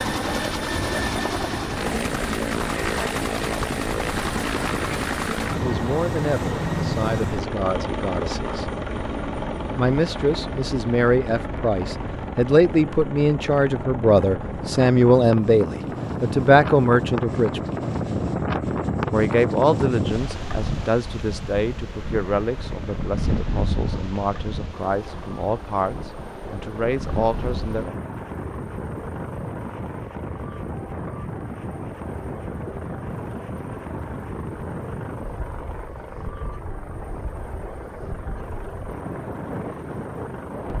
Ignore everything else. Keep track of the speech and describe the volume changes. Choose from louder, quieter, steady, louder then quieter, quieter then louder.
louder then quieter.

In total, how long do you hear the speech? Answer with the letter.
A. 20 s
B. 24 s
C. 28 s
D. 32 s
A.